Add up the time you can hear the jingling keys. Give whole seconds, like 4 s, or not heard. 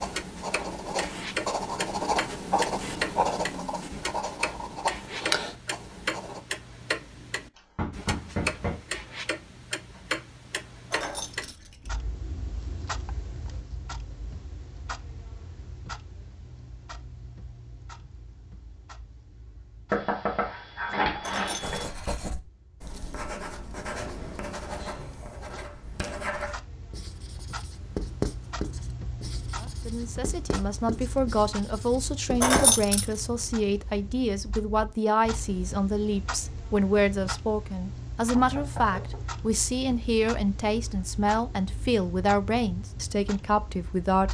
3 s.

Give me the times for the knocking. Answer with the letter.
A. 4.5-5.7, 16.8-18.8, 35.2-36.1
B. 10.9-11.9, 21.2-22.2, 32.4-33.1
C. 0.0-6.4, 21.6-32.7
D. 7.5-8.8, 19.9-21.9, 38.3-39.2
D.